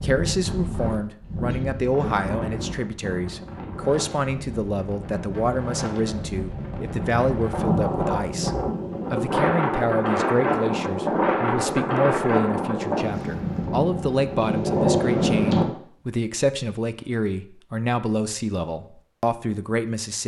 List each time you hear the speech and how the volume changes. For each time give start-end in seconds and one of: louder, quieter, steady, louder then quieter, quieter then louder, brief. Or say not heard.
0.0-20.2 steady.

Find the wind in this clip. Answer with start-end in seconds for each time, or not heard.
0.0-15.7.